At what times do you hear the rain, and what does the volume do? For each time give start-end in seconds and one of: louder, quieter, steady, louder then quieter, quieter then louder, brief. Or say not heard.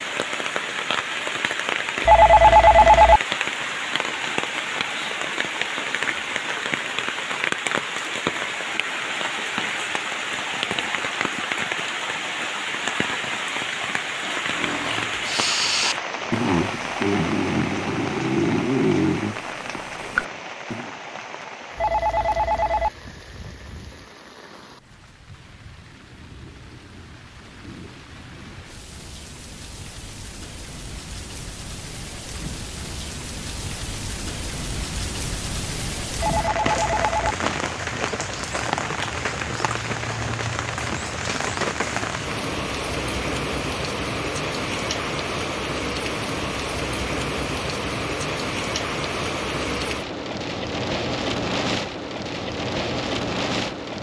0.0-53.9 quieter then louder.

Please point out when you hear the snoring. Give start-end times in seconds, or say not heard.
14.5-20.9.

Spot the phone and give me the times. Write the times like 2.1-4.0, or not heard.
2.0-3.2, 21.8-22.9, 36.2-37.4.